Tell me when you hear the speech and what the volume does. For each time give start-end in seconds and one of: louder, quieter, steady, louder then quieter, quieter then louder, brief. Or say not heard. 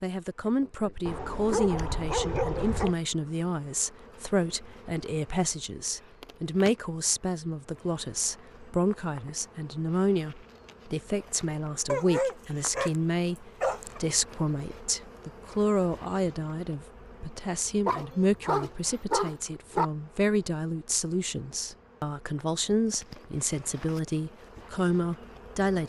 0.0-25.8 steady.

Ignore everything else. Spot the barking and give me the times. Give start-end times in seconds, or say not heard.
1.1-3.0, 11.8-12.9, 13.6-14.0, 17.9-19.9.